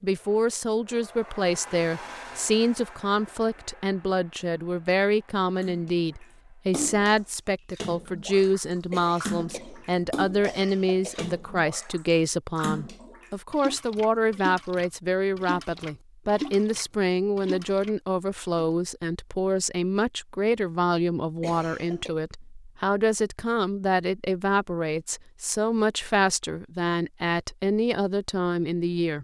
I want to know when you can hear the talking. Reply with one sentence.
The talking can be heard from 0.0 to 29.2 s.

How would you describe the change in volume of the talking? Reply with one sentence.
The loudness of the talking stays about the same.